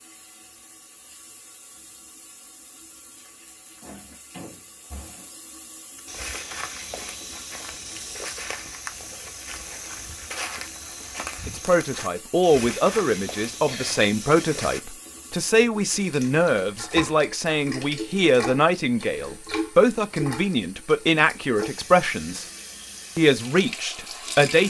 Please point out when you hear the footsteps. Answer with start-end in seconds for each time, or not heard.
6.0-14.8.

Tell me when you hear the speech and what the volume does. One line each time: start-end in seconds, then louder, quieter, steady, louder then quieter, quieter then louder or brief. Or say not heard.
11.4-22.4 steady
23.1-24.6 brief.